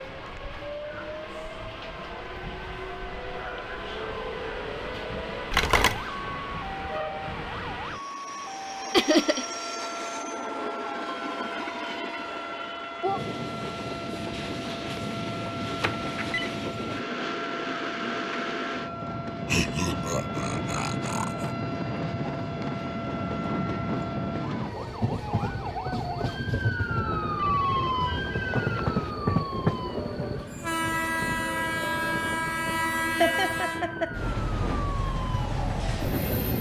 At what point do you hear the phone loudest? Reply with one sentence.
The volume of the phone peaks at 6 seconds.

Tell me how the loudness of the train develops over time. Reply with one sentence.
The loudness of the train goes up.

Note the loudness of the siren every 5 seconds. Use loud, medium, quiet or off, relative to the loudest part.
medium, medium, medium, medium, medium, loud, medium, medium.